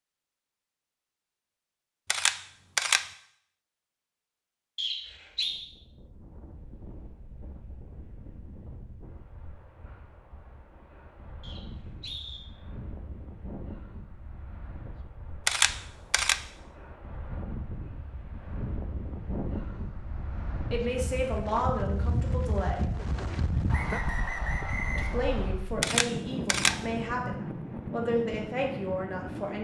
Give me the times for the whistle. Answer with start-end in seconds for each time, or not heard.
4.8-5.5, 11.4-12.4, 23.6-25.6.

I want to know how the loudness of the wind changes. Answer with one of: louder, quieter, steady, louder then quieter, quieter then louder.
louder.